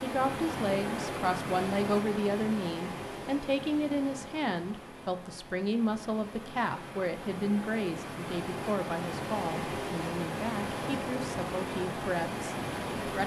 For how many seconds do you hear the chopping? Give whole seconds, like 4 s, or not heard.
not heard.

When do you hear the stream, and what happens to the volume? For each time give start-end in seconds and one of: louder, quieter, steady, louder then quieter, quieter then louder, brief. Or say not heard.
0.0-13.2 quieter then louder.